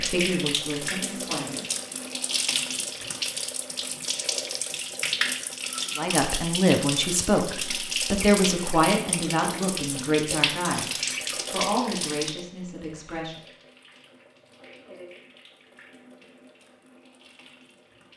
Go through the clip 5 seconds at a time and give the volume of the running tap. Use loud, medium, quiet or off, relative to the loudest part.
loud, loud, loud, quiet.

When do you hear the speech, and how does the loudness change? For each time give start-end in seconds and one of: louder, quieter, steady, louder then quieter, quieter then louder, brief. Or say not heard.
0.0-1.6 brief
6.0-13.4 quieter.